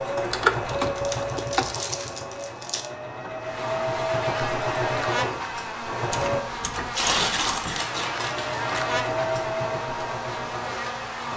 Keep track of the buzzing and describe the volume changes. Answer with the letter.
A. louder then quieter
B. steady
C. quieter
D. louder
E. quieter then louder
B.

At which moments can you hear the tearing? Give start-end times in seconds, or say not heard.
0.9-2.9, 6.9-8.8.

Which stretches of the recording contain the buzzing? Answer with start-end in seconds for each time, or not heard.
3.4-11.3.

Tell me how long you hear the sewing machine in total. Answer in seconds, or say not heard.
10 s.